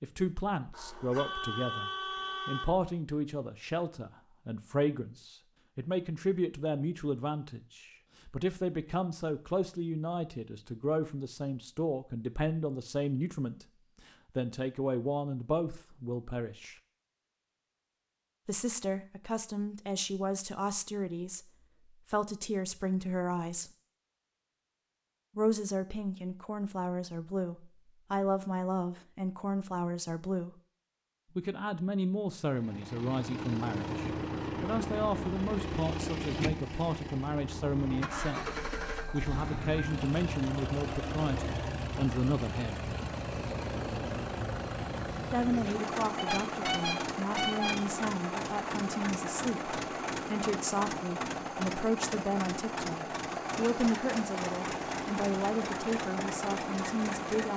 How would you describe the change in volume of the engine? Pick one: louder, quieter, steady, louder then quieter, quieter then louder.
steady.